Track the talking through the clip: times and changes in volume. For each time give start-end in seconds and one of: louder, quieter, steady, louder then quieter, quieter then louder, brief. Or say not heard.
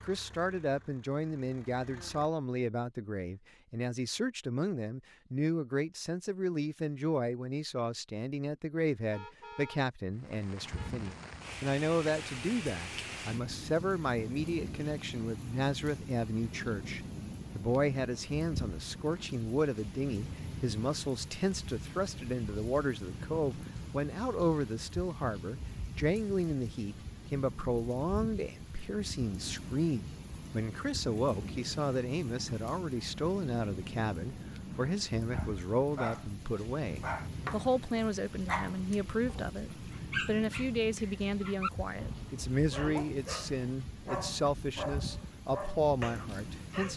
0.1-46.9 steady.